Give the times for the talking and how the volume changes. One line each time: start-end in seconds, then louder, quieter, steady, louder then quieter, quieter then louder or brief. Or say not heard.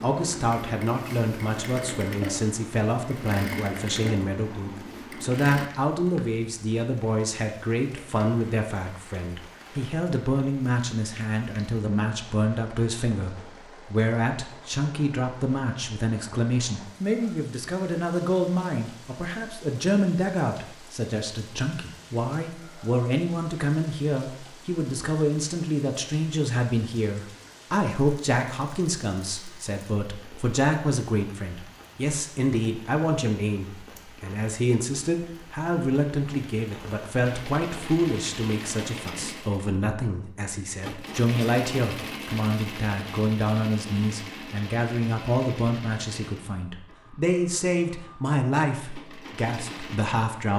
0.0-50.5 steady.